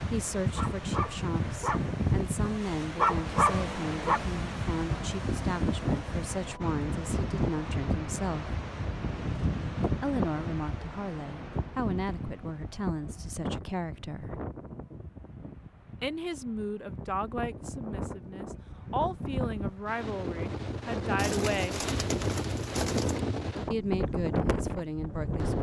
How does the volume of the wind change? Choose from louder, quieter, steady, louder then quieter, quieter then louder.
quieter then louder.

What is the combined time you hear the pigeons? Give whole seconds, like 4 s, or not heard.
2 s.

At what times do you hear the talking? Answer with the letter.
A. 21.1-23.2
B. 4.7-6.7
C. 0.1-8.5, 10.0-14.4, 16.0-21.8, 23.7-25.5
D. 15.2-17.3
C.